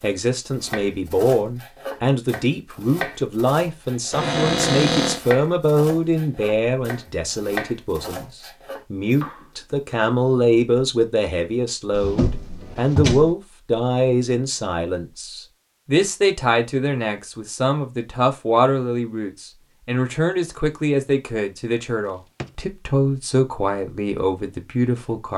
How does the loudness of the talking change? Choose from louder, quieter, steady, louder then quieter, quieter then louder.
steady.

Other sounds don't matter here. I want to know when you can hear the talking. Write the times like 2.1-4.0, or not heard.
0.0-25.3.